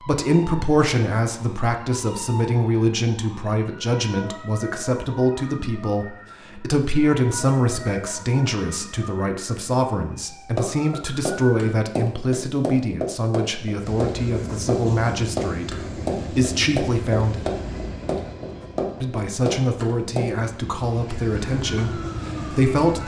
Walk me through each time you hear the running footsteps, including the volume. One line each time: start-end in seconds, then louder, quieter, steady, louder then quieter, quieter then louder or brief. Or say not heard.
10.6-20.3 steady.